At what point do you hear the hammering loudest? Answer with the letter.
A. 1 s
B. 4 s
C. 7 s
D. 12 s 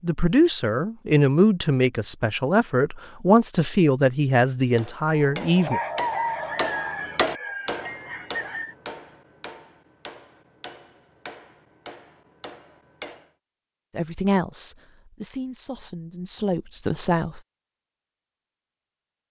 C.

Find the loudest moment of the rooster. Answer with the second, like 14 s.
6 s.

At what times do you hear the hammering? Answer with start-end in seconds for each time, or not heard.
4.8-13.3.